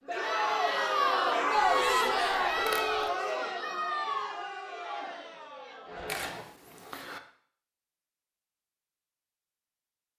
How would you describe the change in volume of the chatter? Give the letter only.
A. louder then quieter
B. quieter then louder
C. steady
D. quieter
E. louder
D.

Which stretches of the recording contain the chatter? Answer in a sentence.
The chatter can be heard from 0.0 to 6.5 s.